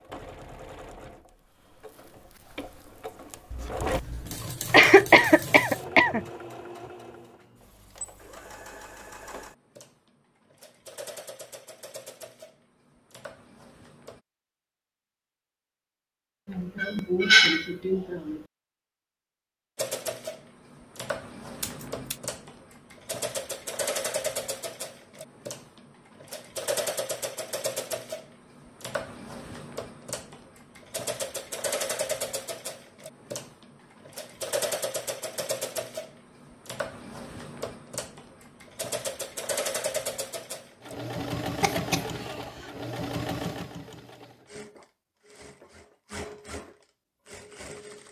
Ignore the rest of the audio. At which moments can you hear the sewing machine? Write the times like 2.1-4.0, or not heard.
0.0-14.2, 19.8-48.0.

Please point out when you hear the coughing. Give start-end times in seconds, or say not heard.
4.7-6.2, 16.4-18.4, 41.6-42.6.